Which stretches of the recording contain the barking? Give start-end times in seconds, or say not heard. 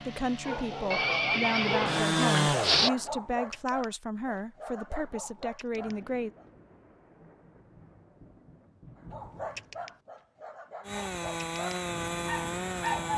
0.4-6.5, 9.1-13.1.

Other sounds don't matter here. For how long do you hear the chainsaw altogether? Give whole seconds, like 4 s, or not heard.
5 s.